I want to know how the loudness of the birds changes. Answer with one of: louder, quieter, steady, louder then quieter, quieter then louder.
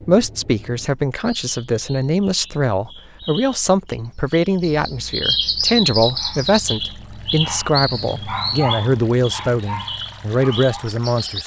louder then quieter.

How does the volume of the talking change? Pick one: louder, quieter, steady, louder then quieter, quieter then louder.
steady.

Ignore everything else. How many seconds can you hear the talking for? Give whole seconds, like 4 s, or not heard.
11 s.